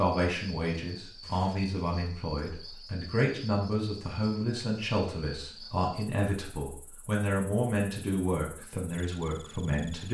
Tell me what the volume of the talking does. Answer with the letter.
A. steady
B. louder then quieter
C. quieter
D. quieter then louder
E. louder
A.